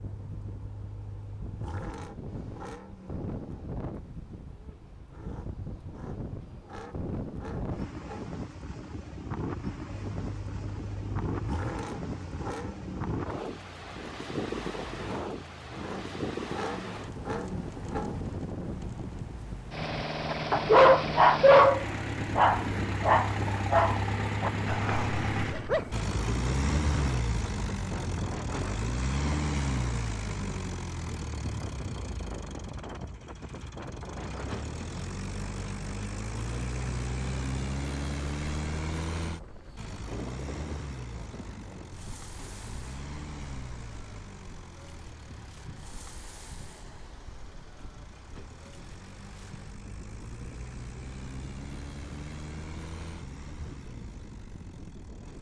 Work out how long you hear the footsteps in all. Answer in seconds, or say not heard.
not heard.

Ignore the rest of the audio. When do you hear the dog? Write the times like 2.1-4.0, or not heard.
20.2-26.1.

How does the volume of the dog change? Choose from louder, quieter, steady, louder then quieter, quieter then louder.
quieter.